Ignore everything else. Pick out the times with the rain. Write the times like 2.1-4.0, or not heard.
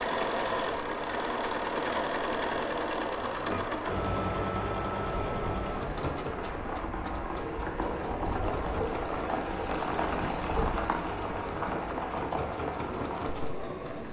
0.1-14.0.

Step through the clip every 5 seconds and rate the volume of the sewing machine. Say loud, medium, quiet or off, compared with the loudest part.
loud, medium, medium.